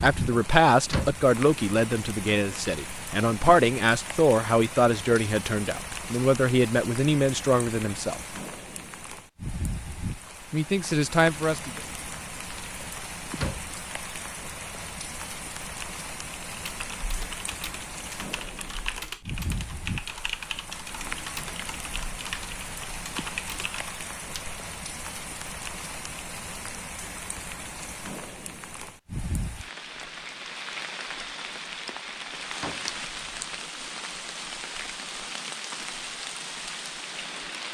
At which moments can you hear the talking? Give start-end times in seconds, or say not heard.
0.0-8.2, 10.5-11.8.